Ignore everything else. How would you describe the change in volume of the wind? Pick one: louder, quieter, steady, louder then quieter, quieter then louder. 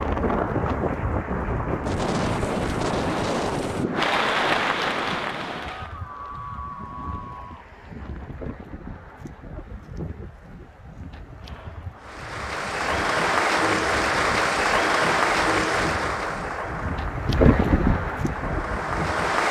quieter then louder.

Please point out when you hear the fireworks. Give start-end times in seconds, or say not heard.
not heard.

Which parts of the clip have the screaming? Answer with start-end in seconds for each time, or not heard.
5.8-7.7.